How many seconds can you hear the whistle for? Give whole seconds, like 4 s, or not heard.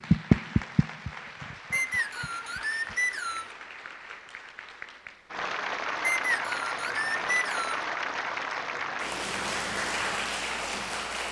4 s.